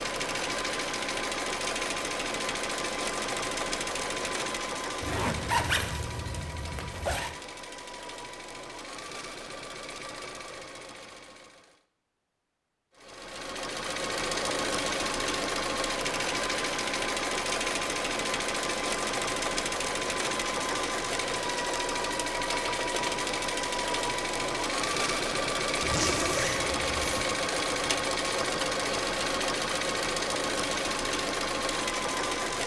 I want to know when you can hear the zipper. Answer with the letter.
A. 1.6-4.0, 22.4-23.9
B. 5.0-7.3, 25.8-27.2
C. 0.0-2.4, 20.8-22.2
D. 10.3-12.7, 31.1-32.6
B.